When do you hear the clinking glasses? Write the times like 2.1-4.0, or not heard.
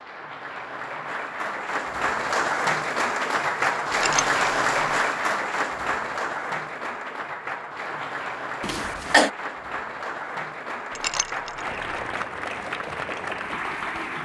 3.9-4.3, 10.9-11.7.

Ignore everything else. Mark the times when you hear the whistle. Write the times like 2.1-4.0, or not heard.
not heard.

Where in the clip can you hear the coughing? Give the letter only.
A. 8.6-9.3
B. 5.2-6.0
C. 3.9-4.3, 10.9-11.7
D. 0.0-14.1
A.